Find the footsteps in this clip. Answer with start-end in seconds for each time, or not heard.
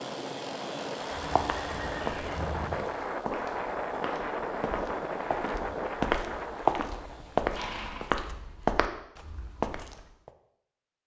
1.4-10.3.